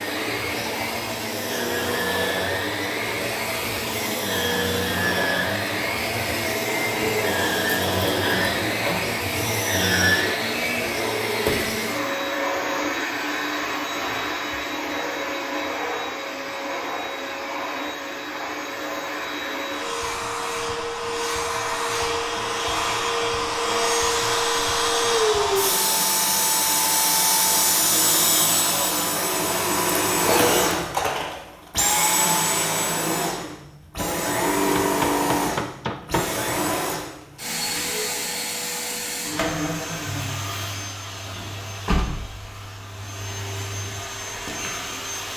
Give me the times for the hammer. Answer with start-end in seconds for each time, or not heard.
34.8-36.4.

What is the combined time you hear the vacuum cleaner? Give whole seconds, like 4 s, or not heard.
45 s.